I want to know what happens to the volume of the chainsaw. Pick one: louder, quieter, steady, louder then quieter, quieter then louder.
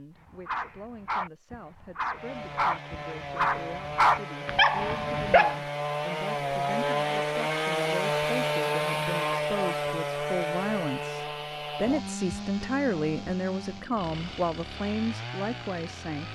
louder then quieter.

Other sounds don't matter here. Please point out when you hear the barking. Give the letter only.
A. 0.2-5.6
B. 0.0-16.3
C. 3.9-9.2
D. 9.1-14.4
A.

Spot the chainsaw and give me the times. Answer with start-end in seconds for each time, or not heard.
2.1-16.3.